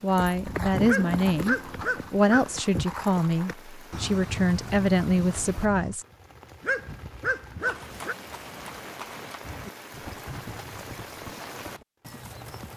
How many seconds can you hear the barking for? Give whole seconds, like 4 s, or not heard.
3 s.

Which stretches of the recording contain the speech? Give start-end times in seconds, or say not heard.
0.0-6.0.